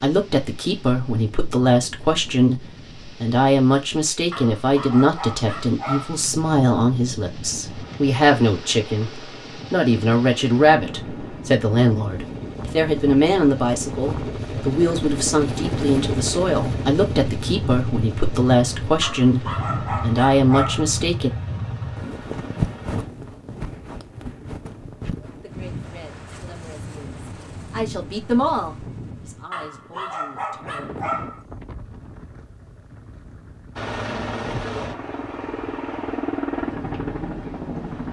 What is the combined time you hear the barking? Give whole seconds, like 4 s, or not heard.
6 s.